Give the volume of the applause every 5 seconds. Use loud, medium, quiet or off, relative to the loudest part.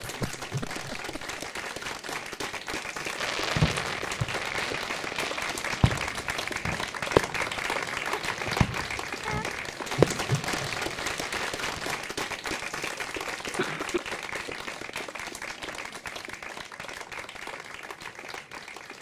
loud, loud, loud, medium.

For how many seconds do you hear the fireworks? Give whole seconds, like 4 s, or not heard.
9 s.